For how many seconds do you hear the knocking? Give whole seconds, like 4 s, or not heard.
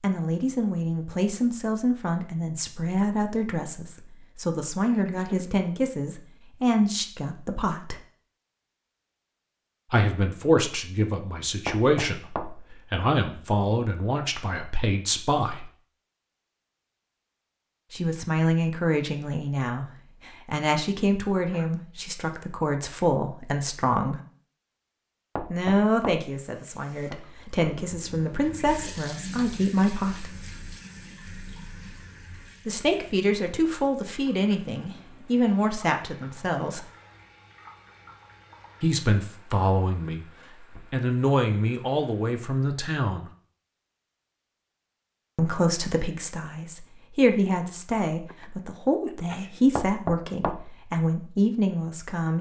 3 s.